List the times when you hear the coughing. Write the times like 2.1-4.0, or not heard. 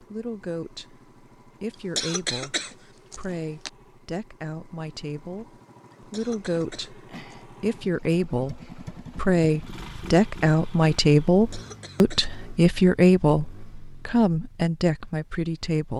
1.7-3.7, 5.9-7.5, 11.3-12.3.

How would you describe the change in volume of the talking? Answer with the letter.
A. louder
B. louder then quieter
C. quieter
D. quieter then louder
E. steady
A.